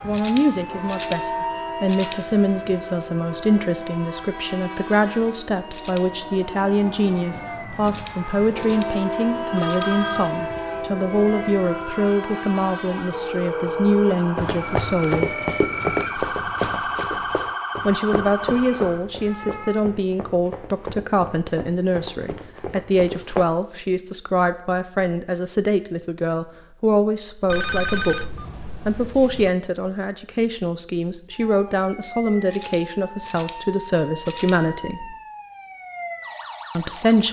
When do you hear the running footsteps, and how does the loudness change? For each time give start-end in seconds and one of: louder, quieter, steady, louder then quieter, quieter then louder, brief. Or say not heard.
14.3-23.4 quieter.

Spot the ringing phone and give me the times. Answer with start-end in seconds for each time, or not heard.
9.5-10.3, 13.1-14.2, 27.5-29.5.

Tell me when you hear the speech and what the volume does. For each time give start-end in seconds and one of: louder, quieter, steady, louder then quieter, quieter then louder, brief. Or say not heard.
0.0-15.3 steady
17.9-35.1 steady
36.8-37.2 brief.